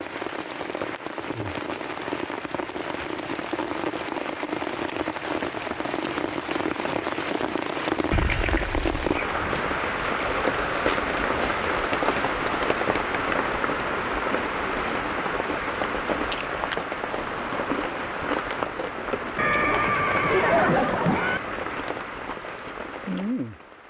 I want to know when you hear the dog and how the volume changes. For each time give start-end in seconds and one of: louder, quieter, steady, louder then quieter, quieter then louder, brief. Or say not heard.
not heard.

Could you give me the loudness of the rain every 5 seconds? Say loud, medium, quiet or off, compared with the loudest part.
medium, loud, loud, loud, medium.